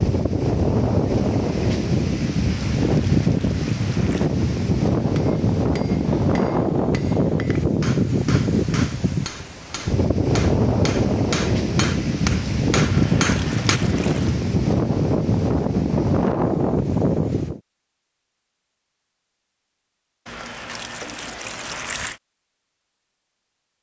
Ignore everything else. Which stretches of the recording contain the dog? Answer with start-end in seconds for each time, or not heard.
not heard.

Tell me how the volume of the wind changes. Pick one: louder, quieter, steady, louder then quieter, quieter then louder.
steady.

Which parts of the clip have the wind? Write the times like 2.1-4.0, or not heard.
0.0-17.6.